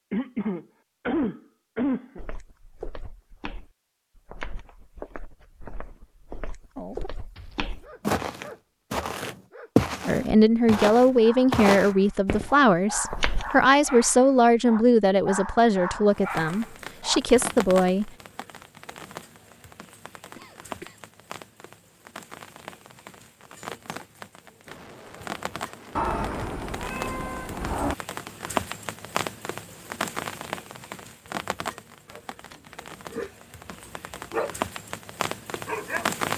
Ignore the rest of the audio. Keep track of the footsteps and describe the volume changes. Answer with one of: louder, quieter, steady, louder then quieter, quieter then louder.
louder.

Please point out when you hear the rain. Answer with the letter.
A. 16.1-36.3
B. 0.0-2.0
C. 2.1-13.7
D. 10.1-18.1
A.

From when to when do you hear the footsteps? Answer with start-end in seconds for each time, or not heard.
2.1-13.7.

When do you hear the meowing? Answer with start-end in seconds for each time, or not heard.
25.9-27.9.